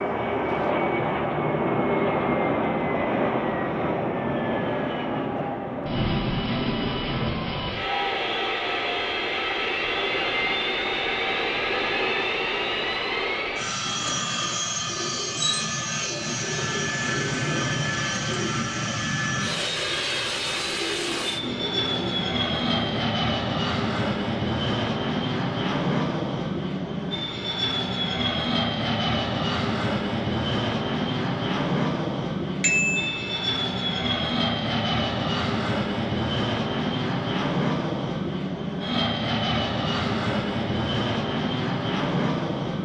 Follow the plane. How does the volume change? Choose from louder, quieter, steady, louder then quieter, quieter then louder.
steady.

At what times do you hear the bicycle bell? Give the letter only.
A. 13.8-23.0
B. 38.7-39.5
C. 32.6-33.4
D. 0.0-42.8
C.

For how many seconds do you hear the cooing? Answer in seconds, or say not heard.
9 s.